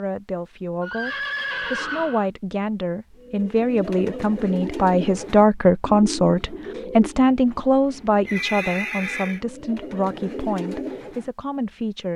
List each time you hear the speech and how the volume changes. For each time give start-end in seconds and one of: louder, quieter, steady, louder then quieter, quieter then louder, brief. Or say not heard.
0.0-12.1 louder then quieter.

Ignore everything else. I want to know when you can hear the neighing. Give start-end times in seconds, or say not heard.
0.8-2.3, 8.2-9.4.